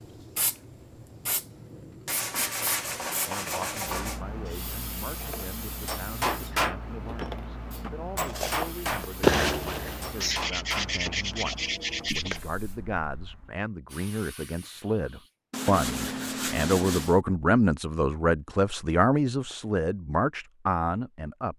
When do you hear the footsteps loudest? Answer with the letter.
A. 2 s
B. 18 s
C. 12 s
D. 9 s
D.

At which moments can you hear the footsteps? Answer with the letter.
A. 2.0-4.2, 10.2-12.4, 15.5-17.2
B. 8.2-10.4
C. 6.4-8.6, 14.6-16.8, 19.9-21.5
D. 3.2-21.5
B.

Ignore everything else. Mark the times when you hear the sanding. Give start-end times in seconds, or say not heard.
2.0-4.2, 10.2-12.4, 15.5-17.2.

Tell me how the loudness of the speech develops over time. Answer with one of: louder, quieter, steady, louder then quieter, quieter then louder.
louder.